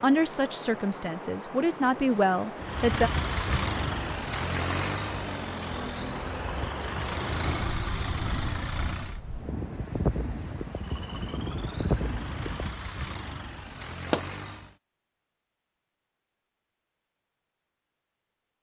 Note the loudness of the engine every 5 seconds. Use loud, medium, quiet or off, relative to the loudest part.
loud, loud, medium, off.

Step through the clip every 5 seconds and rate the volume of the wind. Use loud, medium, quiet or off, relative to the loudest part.
medium, medium, loud, off.